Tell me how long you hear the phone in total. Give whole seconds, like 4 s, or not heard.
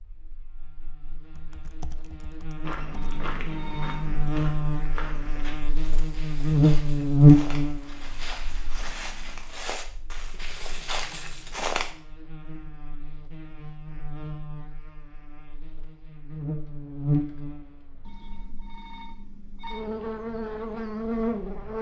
4 s.